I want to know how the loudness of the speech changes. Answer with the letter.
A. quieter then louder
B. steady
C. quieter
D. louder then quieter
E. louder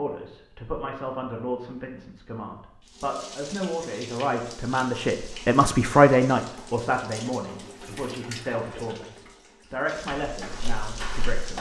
D.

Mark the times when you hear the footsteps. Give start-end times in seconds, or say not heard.
10.2-11.5.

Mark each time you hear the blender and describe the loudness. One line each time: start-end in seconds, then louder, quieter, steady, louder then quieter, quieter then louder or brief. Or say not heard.
not heard.